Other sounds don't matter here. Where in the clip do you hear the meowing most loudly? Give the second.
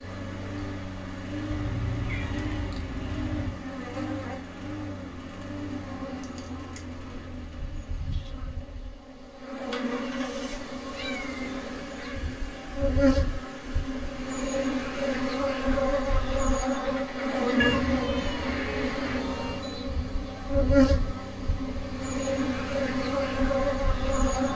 18 s.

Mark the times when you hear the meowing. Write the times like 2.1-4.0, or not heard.
1.5-3.5, 10.9-12.2, 17.6-19.6.